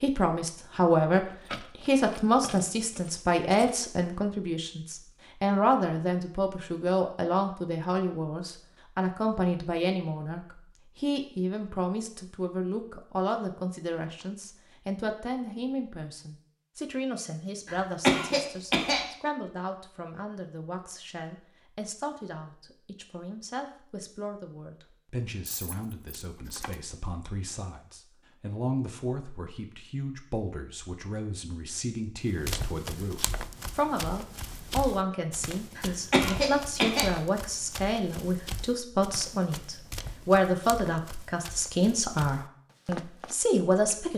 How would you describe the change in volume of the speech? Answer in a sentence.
The volume of the speech goes down, then up.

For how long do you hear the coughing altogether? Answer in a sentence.
The coughing can be heard for 3 seconds in total.